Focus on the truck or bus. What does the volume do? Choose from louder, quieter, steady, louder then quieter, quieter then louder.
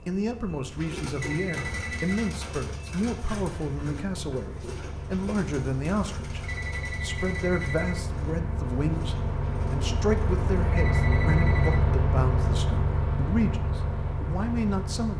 louder.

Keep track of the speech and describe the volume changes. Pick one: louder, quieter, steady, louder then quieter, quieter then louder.
steady.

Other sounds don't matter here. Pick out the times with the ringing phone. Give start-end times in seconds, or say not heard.
1.1-2.3, 6.4-8.1, 10.7-11.8.